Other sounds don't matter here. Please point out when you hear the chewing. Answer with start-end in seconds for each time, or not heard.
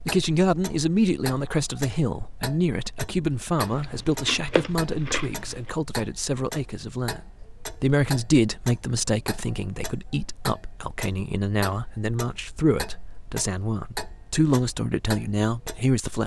3.6-5.7.